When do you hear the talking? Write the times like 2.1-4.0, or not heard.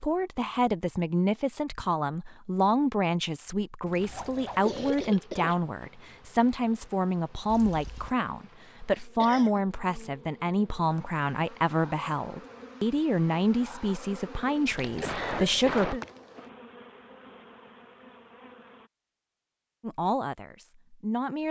0.0-16.0, 19.8-21.4.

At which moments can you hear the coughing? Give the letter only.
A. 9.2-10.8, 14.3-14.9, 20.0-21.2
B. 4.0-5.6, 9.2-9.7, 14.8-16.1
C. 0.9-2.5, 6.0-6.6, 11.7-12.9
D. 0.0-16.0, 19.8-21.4
B.